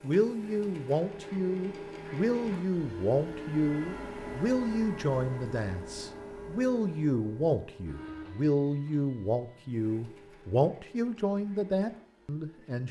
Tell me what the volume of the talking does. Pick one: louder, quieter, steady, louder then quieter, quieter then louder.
steady.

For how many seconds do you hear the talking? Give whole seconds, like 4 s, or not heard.
13 s.